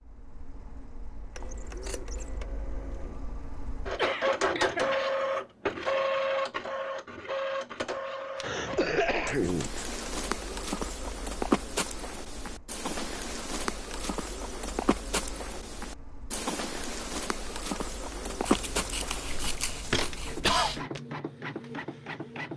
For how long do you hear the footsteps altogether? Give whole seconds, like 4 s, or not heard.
12 s.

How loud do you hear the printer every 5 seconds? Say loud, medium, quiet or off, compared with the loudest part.
loud, loud, quiet, quiet, medium.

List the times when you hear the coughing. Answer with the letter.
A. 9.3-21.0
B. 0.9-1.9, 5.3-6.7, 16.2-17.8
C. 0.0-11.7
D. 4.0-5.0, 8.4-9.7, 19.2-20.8
D.